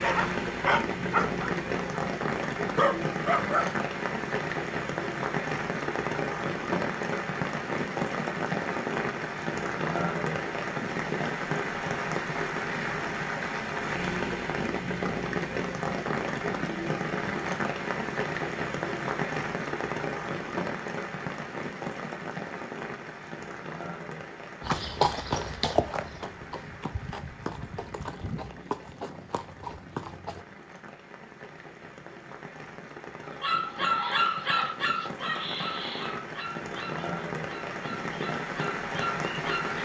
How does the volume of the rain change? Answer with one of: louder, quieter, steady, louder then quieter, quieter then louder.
quieter then louder.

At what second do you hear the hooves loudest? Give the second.
25 s.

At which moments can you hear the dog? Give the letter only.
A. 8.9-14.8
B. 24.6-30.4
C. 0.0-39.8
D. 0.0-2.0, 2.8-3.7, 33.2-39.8
D.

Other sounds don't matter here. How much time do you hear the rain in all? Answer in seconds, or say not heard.
40 s.